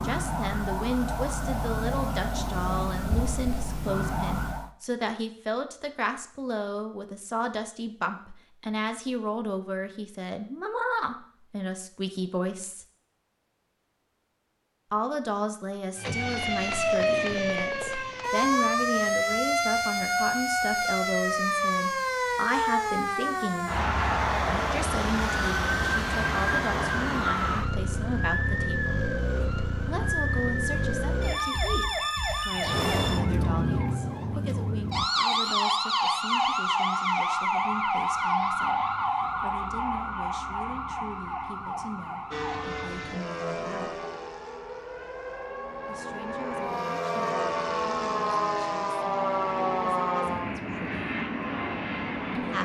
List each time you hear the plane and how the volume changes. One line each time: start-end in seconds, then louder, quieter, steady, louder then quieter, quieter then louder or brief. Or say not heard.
42.3-52.6 quieter then louder.